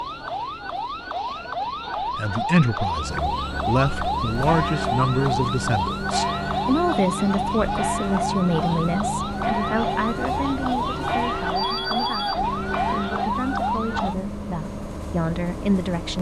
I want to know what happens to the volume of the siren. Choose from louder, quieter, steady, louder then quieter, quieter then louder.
steady.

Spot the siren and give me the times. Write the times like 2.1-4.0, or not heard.
0.0-14.2.